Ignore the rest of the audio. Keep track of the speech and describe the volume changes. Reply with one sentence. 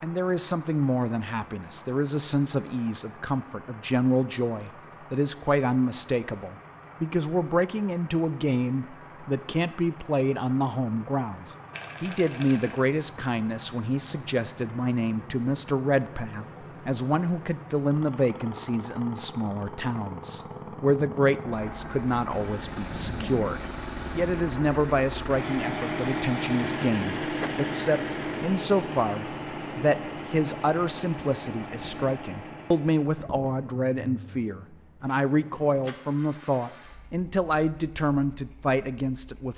The volume of the speech stays about the same.